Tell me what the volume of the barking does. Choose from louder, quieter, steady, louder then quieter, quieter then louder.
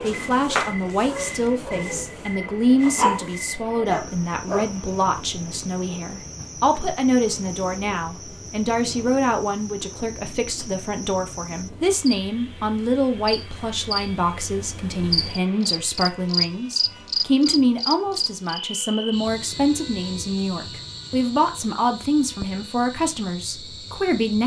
quieter then louder.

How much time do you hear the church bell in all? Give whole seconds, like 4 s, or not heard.
not heard.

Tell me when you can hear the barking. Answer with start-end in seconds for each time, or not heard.
0.0-4.7.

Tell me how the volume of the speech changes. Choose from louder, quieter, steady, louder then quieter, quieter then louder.
steady.